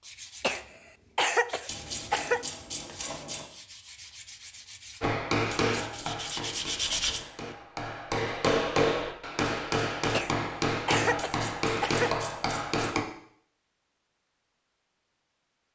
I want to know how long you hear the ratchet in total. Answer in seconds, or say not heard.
5 s.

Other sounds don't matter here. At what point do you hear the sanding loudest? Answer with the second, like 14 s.
7 s.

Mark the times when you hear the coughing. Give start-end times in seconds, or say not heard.
0.4-2.5, 10.1-12.2.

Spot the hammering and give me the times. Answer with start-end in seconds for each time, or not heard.
5.0-13.1.